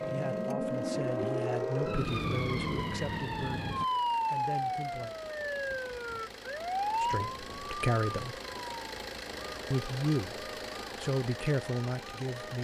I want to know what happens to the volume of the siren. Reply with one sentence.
The volume of the siren goes down.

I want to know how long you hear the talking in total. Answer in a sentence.
You can hear the talking for 9 seconds altogether.